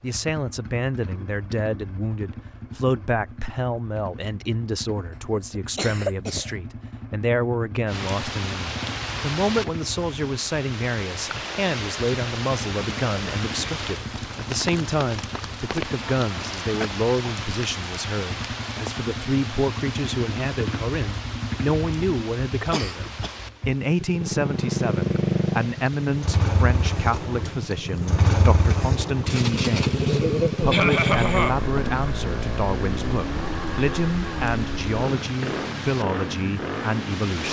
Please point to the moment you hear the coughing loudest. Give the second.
31 s.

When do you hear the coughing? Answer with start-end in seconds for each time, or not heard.
5.5-6.5, 22.6-23.4, 30.7-31.6.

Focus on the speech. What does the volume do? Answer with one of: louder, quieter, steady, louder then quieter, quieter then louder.
steady.